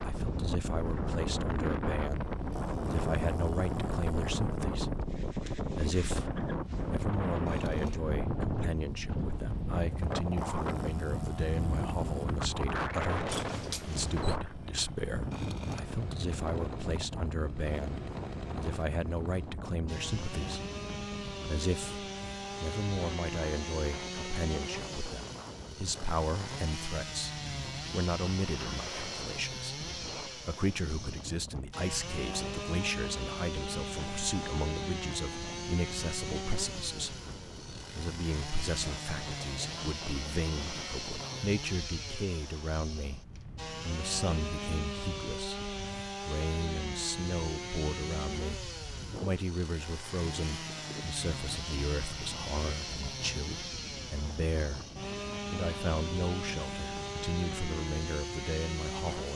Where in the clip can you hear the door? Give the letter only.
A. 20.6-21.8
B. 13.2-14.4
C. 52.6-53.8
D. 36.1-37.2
B.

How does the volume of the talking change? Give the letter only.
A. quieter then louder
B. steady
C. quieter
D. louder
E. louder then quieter
B.